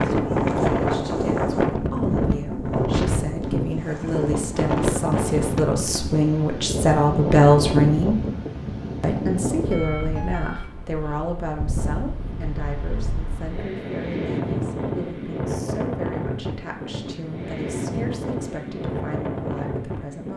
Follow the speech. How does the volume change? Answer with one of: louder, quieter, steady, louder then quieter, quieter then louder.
louder then quieter.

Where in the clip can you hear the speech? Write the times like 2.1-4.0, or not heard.
0.0-8.2, 9.0-20.3.